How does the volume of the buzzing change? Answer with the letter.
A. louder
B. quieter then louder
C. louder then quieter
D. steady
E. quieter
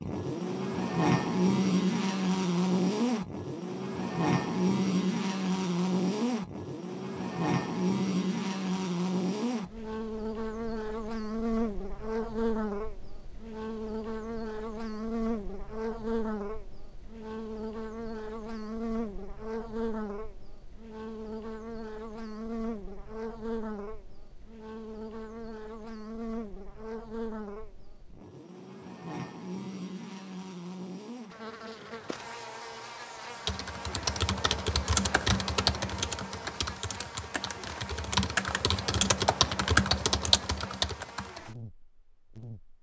E.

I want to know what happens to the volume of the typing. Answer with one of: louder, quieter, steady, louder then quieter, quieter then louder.
quieter then louder.